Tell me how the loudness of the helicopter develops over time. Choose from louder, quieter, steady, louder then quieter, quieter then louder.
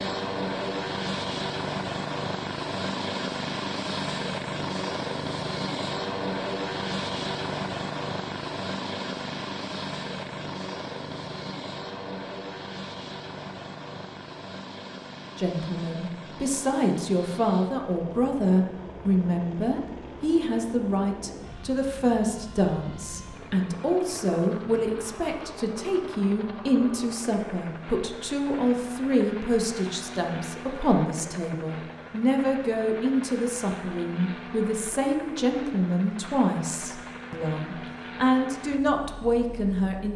quieter.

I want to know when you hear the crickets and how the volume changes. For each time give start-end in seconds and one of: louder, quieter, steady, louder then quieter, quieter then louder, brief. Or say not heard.
not heard.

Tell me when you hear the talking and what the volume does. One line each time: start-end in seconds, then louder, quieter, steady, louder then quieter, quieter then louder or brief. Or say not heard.
15.3-40.1 steady.